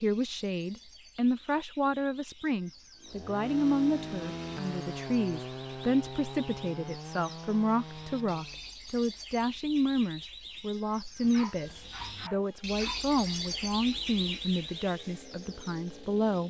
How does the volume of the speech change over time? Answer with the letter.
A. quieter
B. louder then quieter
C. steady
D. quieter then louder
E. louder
C.